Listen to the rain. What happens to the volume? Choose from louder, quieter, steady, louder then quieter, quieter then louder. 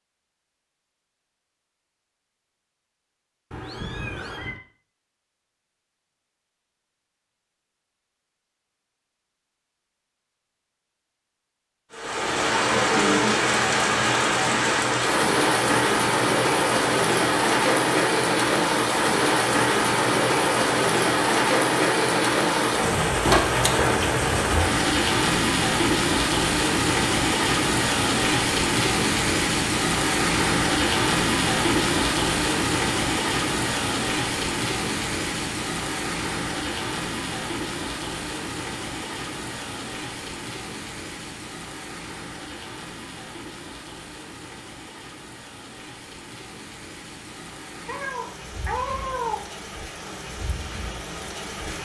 quieter.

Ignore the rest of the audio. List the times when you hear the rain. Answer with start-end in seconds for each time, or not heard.
11.9-51.7.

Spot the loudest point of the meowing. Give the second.
49 s.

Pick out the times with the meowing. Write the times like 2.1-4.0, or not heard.
3.5-4.6, 47.9-49.4.